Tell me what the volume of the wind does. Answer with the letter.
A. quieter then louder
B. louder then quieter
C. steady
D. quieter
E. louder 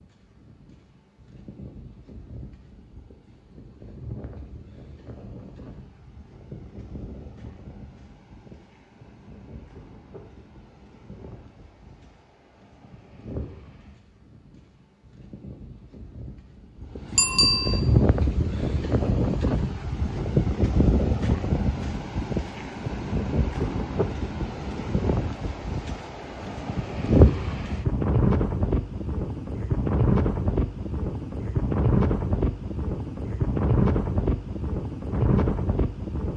E.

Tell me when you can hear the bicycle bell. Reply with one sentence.
The bicycle bell can be heard from 17.1 to 17.8 s.